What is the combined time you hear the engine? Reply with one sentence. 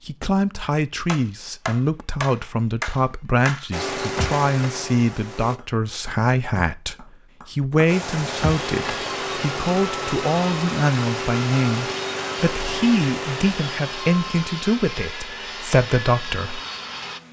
You can hear the engine for 11 seconds altogether.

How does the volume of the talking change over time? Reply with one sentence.
The volume of the talking stays about the same.